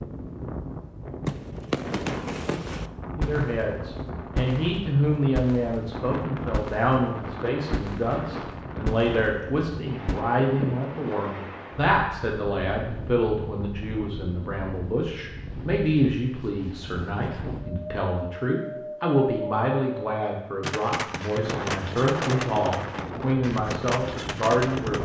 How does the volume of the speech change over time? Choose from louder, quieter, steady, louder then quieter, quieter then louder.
steady.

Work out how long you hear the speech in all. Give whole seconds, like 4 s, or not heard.
22 s.